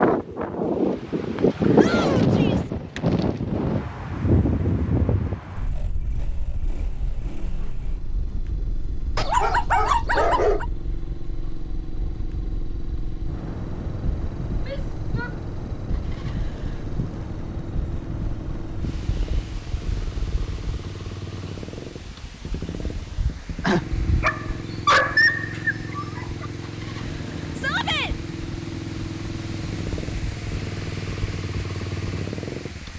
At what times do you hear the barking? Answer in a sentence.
You can hear the barking from 9.2 to 10.7 s and from 23.6 to 26.4 s.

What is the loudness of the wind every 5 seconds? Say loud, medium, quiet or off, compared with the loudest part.
loud, quiet, quiet, quiet, quiet, quiet, quiet.